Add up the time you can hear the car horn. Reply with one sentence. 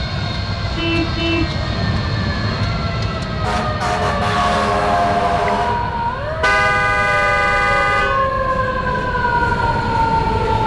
The car horn can be heard for 3 seconds in total.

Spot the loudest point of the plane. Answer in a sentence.
The loudest moment of the plane is at 2 seconds.